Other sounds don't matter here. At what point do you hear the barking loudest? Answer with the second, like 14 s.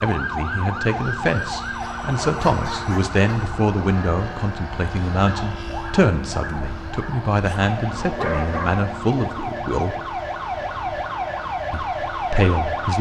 8 s.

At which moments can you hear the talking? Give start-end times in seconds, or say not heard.
0.0-10.0, 11.7-12.9.